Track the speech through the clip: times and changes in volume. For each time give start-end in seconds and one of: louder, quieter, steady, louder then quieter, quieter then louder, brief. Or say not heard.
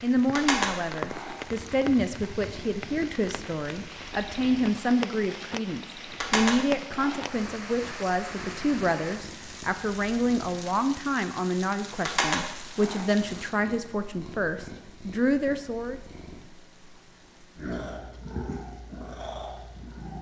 0.0-16.0 steady.